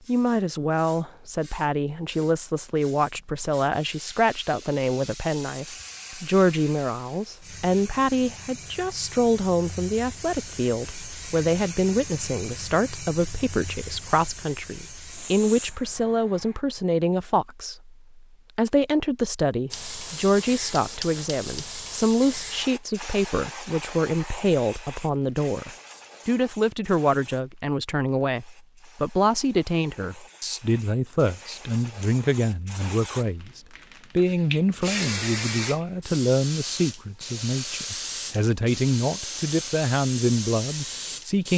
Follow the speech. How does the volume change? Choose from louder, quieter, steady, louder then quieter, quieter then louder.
steady.